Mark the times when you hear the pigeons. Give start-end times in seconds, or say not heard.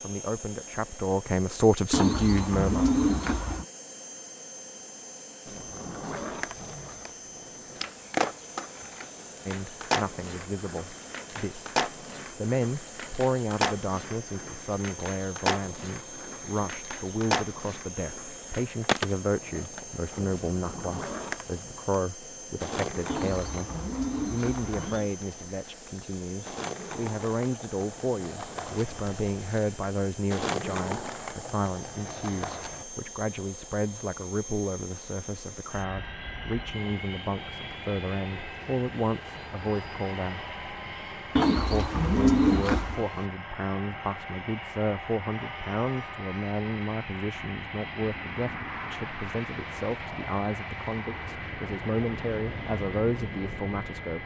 1.9-3.6, 23.1-25.1, 41.4-43.0.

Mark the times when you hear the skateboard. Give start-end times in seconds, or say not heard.
5.5-32.9.